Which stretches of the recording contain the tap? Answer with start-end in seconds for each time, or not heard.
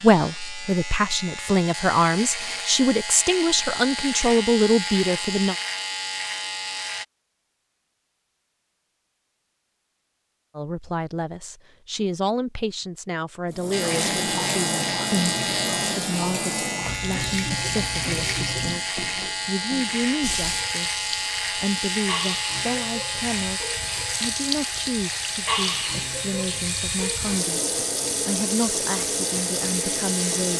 13.5-30.5.